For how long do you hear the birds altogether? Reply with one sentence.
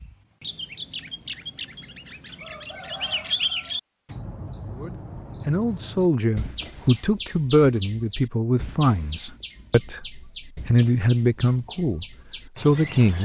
The birds can be heard for 13 seconds in total.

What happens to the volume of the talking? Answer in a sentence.
The loudness of the talking stays about the same.